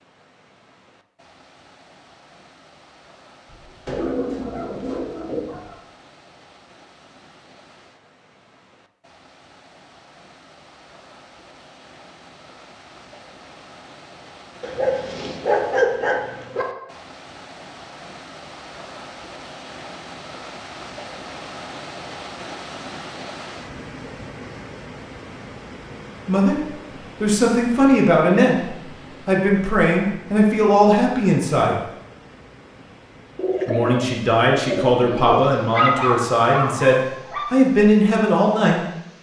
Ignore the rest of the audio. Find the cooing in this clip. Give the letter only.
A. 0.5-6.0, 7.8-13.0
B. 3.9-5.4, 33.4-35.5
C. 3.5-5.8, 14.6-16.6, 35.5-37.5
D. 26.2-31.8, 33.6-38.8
B.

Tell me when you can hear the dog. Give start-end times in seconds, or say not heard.
3.5-5.8, 14.6-16.6, 35.5-37.5.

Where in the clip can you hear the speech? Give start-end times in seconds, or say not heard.
26.2-31.8, 33.6-38.8.